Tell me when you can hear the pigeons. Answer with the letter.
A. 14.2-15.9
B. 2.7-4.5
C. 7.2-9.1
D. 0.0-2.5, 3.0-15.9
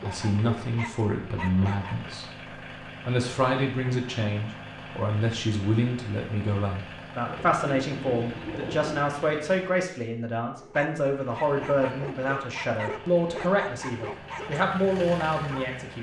C.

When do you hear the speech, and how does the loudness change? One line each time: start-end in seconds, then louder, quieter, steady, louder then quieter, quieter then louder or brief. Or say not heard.
0.0-2.5 brief
3.0-15.9 steady.